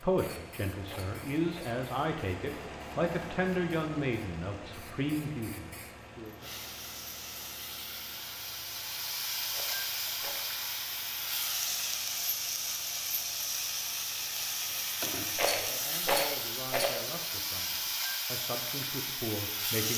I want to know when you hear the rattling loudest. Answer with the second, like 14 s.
16 s.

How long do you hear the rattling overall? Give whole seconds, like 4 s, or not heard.
4 s.